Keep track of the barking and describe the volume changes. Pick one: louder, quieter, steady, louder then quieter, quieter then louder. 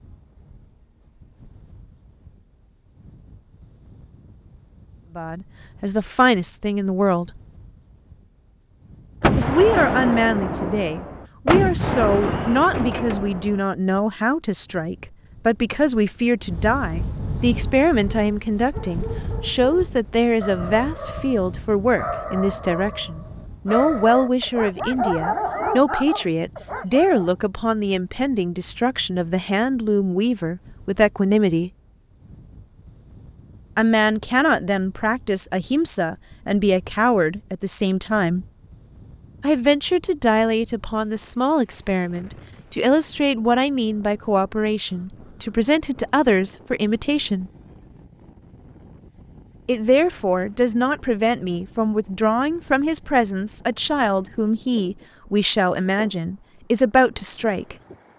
louder.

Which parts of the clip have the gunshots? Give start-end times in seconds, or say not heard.
9.2-13.6.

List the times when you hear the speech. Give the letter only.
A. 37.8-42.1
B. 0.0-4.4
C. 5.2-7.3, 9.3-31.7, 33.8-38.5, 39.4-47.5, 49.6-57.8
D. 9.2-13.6
C.